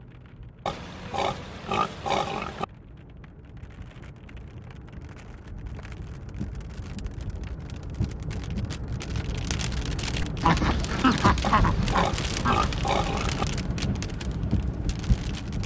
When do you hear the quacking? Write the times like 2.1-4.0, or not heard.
10.2-12.8.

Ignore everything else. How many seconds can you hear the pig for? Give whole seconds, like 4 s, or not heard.
4 s.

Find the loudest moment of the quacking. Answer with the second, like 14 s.
11 s.